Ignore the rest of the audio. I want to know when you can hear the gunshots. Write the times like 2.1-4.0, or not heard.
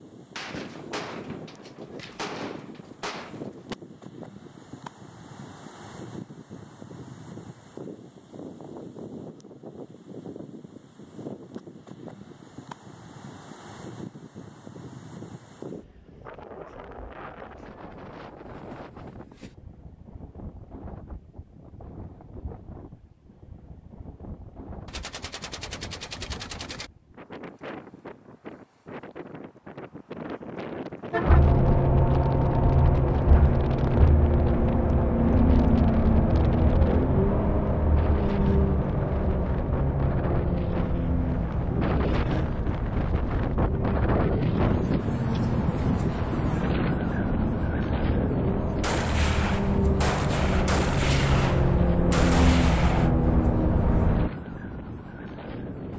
0.3-3.8, 24.9-26.9, 48.8-53.1.